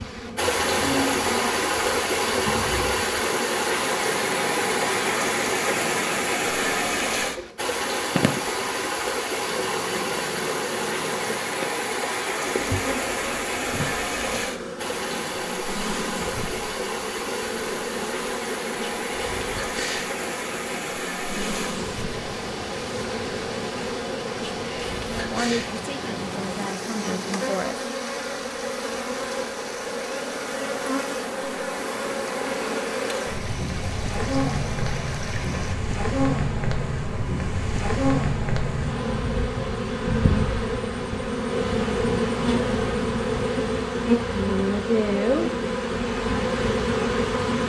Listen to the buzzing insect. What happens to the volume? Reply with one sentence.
The loudness of the buzzing insect goes up.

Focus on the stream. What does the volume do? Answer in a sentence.
The volume of the stream goes down.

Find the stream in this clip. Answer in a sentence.
You can hear the stream from 0.0 to 35.8 s.